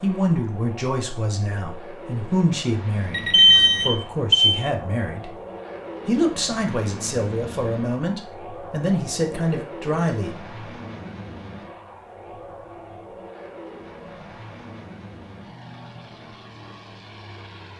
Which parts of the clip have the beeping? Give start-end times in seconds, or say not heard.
3.1-4.6.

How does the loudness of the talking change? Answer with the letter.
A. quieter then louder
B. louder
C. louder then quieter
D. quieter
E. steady
E.